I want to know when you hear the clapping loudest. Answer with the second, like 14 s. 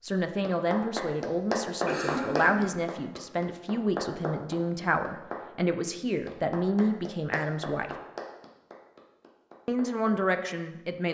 2 s.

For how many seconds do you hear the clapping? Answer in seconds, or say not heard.
9 s.